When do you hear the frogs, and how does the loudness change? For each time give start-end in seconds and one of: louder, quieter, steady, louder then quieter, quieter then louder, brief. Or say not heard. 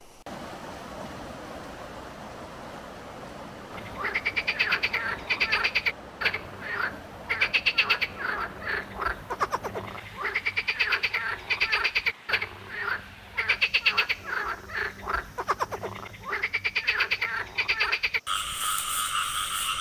3.7-19.7 steady.